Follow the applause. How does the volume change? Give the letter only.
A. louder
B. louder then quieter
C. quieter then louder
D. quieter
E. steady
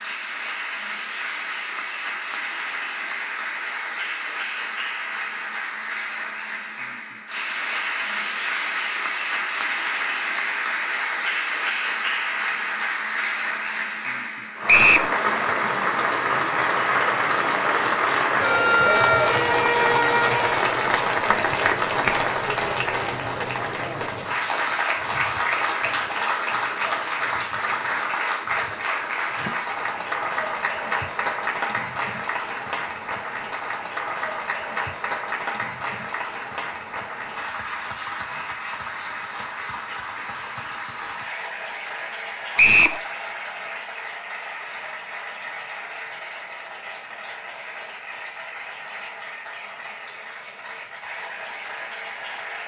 B.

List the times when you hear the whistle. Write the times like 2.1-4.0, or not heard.
14.7-15.1, 42.5-43.0.